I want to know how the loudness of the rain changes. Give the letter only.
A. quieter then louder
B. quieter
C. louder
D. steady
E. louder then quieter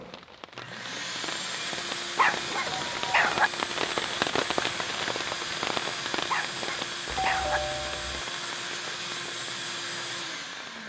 E.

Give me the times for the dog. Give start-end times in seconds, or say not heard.
2.1-3.5, 6.3-7.6.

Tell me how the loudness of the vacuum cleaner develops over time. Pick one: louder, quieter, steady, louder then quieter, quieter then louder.
steady.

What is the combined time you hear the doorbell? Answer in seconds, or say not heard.
2 s.